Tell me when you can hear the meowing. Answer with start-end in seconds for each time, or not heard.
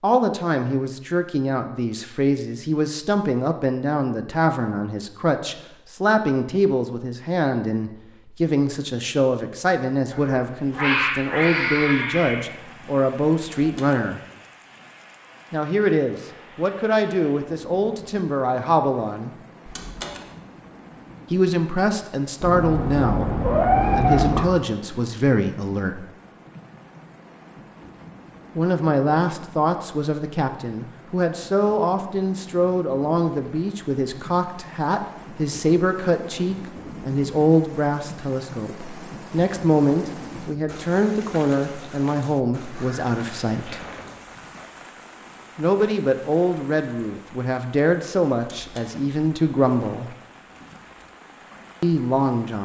10.1-12.5, 22.4-24.4, 42.7-44.1.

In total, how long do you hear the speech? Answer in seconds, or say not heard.
43 s.